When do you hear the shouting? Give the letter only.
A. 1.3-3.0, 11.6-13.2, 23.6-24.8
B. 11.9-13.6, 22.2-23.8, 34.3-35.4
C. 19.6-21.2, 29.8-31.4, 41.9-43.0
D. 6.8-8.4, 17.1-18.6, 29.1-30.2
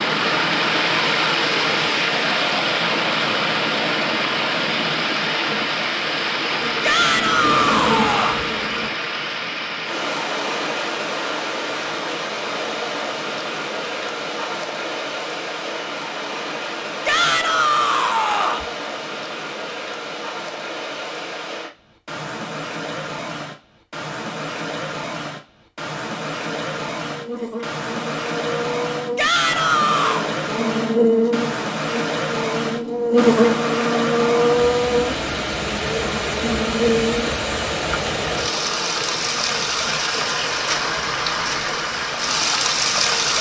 D.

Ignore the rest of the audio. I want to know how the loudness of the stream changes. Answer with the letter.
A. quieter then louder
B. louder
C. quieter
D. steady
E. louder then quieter
A.